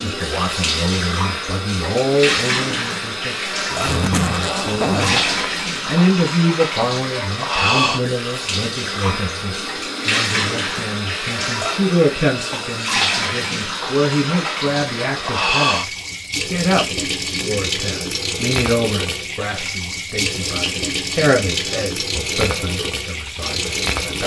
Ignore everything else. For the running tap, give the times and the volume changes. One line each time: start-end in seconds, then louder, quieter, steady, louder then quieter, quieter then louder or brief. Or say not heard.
0.0-24.2 steady.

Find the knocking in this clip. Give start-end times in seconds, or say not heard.
not heard.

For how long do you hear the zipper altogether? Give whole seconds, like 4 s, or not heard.
2 s.